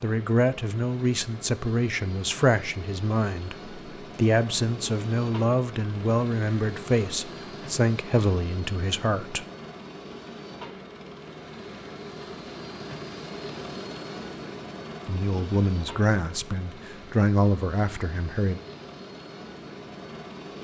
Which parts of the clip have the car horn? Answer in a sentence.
The car horn can't be heard in this clip.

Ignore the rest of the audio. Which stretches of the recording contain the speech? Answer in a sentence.
You can hear the speech from 0.0 to 9.4 s and from 15.1 to 18.6 s.